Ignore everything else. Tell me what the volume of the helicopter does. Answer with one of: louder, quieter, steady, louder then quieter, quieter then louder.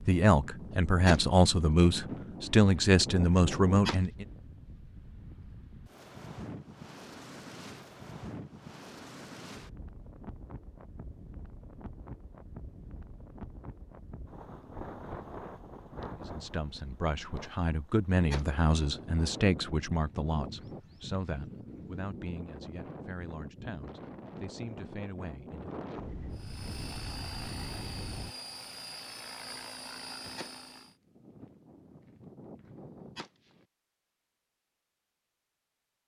steady.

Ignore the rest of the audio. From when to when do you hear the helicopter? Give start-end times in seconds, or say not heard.
26.3-30.9.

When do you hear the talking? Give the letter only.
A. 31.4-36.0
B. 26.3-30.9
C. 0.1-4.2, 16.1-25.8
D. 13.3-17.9
C.